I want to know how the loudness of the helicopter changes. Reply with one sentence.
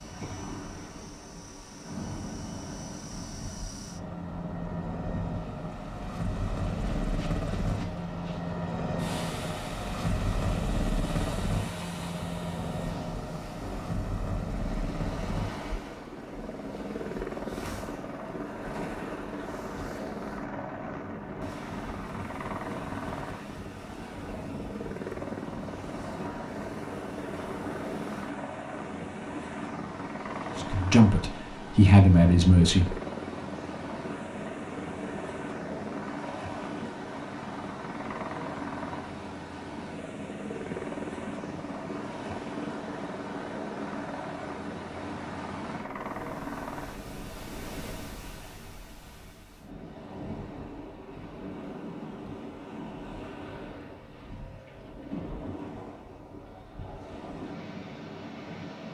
The loudness of the helicopter stays about the same.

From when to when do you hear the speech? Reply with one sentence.
The speech can be heard from 30.6 to 33.0 s.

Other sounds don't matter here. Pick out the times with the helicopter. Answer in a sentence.
The helicopter can be heard from 0.0 to 48.0 s.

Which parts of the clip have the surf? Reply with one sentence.
You can hear the surf from 0.0 to 58.8 s.